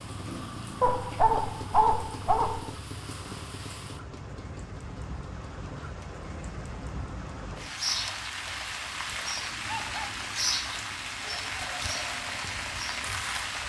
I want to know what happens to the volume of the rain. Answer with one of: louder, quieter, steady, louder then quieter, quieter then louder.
louder.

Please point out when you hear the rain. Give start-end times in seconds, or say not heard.
0.0-13.6.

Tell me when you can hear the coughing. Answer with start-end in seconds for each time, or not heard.
not heard.